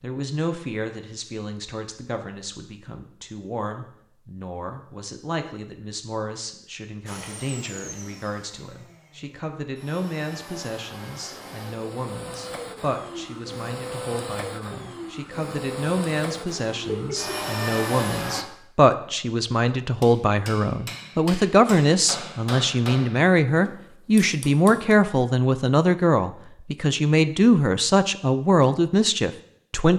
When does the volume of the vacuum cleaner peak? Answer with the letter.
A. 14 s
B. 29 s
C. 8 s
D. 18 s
D.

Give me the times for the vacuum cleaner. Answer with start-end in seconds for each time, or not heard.
7.0-18.4.